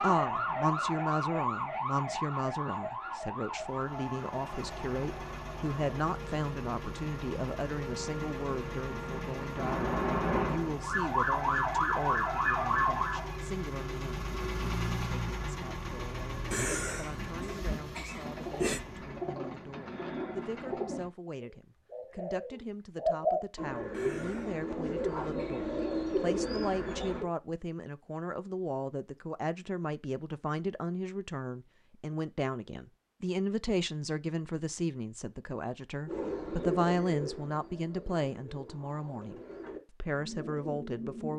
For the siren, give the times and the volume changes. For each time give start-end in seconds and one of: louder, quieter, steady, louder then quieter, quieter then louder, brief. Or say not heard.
0.0-13.4 quieter then louder.